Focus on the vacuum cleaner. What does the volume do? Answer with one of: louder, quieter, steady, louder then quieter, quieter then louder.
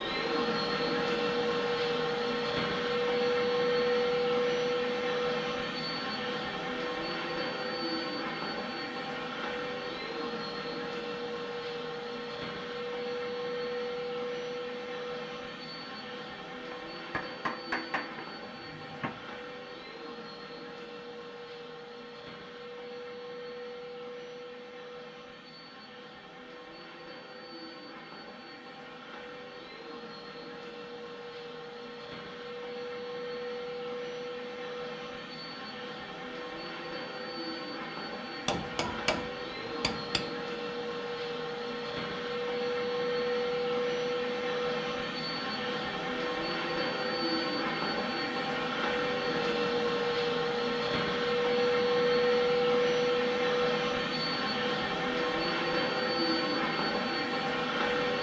quieter then louder.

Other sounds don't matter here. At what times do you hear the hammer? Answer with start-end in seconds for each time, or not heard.
16.7-19.4, 38.5-40.2.